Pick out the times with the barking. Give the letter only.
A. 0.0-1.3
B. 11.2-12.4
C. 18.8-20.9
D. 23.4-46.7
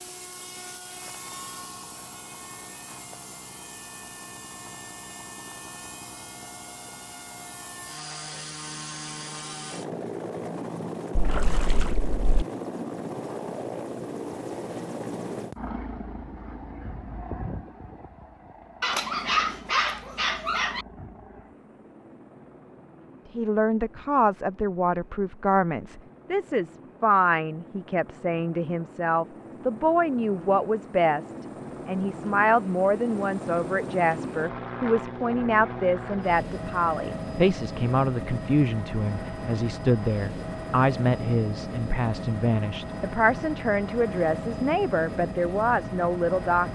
C.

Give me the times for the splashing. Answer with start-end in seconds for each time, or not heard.
11.2-12.4.